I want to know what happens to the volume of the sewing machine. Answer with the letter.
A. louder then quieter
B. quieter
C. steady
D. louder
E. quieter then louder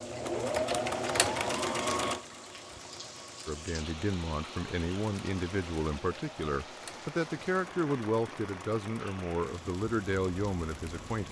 B.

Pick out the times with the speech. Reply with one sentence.
The speech can be heard from 3.5 to 11.2 s.